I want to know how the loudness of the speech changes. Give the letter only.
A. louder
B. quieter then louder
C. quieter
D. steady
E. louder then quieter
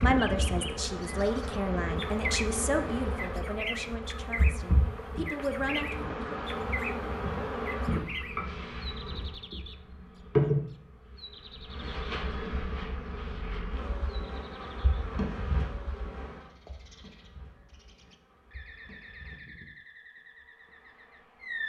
B.